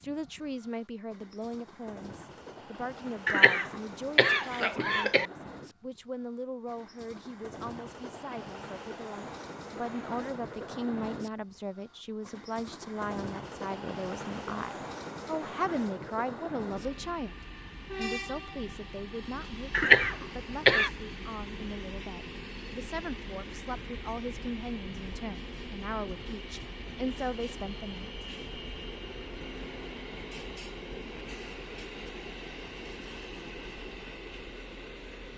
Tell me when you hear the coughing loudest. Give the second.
20 s.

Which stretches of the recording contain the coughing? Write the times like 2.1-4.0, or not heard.
3.2-5.2, 19.7-20.9.